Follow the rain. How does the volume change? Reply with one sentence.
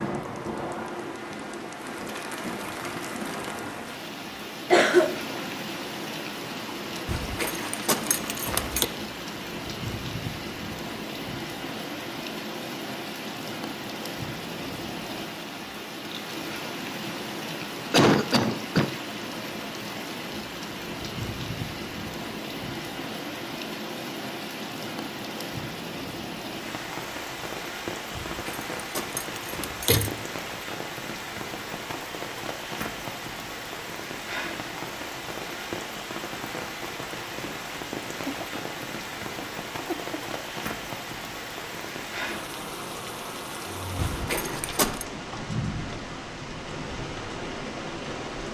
The loudness of the rain stays about the same.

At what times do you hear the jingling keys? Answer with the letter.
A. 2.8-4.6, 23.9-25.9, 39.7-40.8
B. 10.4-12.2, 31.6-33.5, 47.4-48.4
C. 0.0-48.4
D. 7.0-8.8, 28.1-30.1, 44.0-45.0
D.